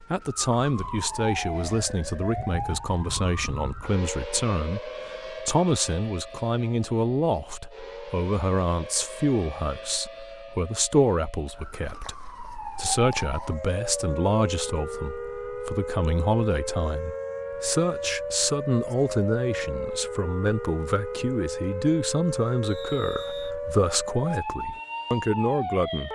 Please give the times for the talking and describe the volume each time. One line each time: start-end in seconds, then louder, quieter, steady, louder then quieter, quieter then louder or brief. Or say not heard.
0.1-26.0 steady.